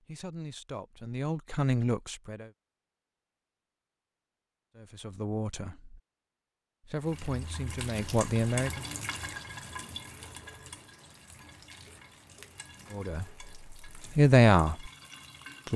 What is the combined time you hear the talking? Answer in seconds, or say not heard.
8 s.